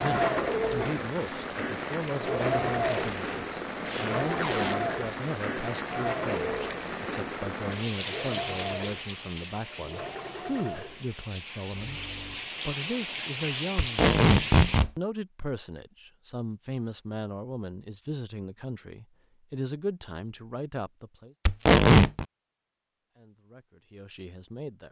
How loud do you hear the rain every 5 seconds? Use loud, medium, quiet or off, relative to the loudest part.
loud, loud, loud, off, off.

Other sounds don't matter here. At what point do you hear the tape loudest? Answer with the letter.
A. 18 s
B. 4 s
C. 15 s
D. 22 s
D.